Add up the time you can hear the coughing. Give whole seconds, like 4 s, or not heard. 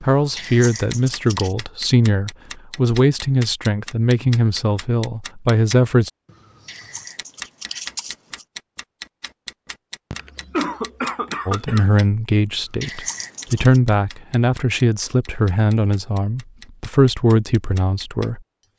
2 s.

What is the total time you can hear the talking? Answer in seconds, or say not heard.
13 s.